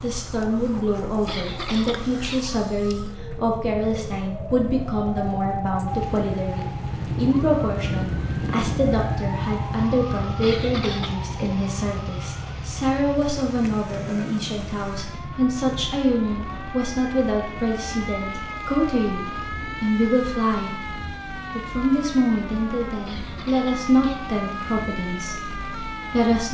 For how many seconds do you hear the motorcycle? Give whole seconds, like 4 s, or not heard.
23 s.